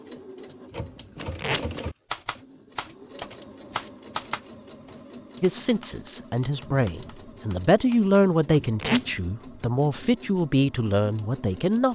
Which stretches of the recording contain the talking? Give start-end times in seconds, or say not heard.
5.4-11.8.